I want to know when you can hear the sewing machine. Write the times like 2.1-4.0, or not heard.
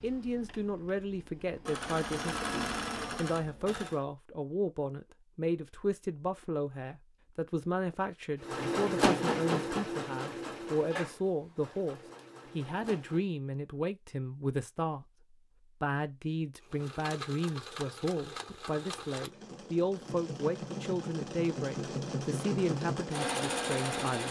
0.0-4.0, 8.4-13.2, 16.6-24.2.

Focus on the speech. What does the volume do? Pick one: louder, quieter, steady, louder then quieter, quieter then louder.
steady.